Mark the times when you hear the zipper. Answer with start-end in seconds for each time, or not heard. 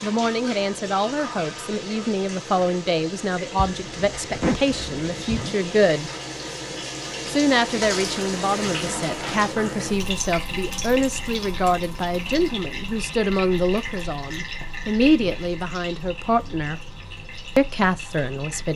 3.5-5.5.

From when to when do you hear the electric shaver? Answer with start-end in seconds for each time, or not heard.
not heard.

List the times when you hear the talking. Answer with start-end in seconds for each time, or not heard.
0.0-6.1, 7.2-16.8, 17.6-18.7.